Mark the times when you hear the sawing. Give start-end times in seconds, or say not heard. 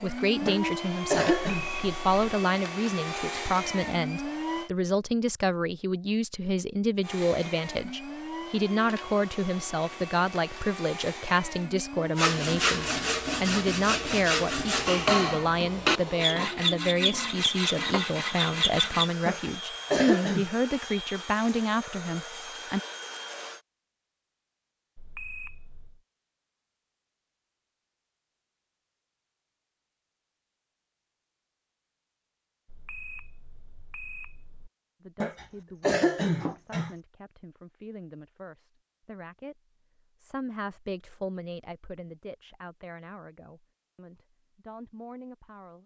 12.2-19.1.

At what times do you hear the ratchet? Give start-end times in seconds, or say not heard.
not heard.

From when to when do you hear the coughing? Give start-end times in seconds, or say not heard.
0.5-1.6, 19.2-20.4, 35.2-36.9.